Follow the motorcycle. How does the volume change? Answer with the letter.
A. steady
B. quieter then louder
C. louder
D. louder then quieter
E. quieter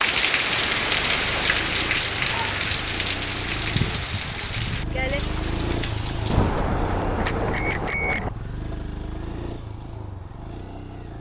D.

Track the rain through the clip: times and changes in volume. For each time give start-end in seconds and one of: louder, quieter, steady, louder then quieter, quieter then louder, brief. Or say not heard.
0.0-6.7 quieter.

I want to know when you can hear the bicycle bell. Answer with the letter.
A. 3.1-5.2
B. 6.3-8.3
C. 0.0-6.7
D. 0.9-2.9
B.